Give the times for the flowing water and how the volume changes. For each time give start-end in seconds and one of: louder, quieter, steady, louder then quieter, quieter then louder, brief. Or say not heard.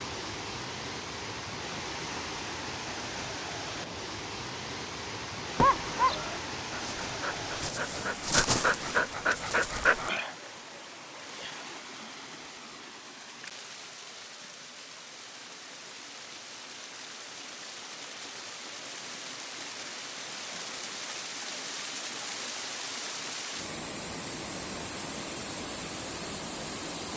0.0-27.1 quieter then louder.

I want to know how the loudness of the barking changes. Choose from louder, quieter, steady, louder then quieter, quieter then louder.
quieter then louder.